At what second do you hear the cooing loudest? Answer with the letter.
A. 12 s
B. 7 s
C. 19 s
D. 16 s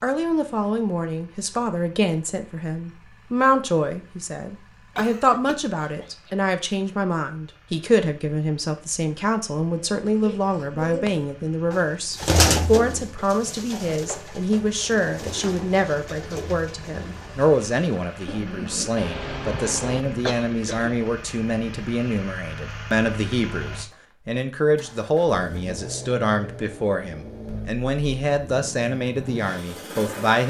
A.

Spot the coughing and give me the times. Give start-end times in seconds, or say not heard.
5.0-6.3, 18.9-20.9.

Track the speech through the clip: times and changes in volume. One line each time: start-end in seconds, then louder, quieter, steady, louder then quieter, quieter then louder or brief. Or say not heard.
0.0-30.4 steady.